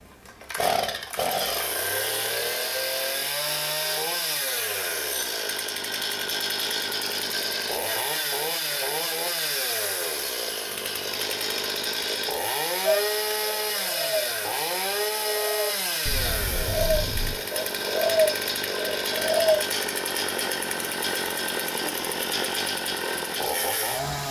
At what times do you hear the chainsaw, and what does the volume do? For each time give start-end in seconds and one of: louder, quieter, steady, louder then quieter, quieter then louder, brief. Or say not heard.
0.0-24.2 steady.